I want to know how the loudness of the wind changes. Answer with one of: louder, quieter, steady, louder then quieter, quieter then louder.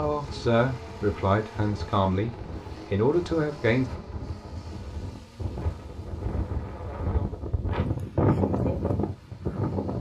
louder.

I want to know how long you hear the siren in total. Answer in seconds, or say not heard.
not heard.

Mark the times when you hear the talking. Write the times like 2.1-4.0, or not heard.
0.0-3.9.